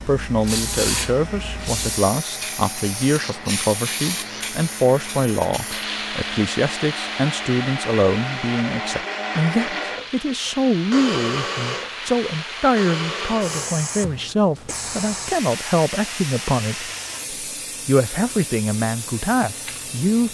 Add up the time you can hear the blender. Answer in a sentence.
The blender can be heard for 14 seconds in total.